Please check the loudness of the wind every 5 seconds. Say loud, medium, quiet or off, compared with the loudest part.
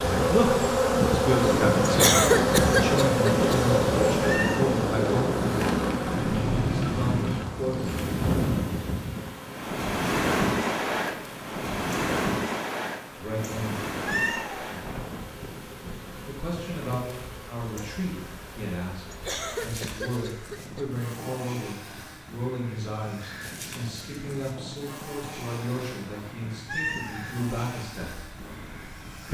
loud, loud, loud, quiet, quiet, quiet.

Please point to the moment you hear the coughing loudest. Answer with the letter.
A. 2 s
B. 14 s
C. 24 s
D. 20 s
A.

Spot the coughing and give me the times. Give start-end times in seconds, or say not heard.
1.8-3.6, 19.1-20.9.